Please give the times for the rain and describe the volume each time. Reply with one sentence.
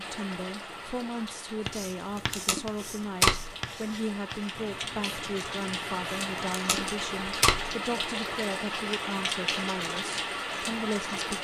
The rain can be heard from 0.0 to 11.3 s, getting louder.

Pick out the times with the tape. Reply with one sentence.
You can hear the tape from 2.1 to 3.5 s and from 6.3 to 7.7 s.